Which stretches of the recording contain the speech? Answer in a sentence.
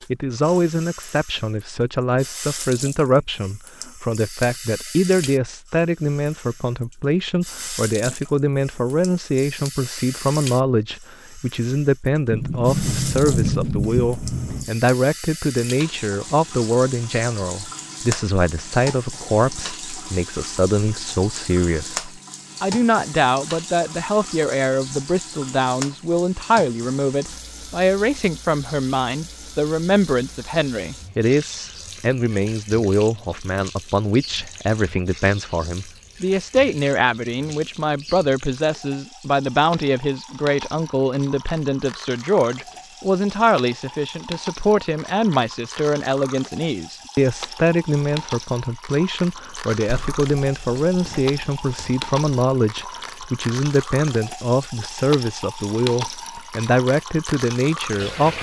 The speech can be heard from 0.1 to 58.3 s.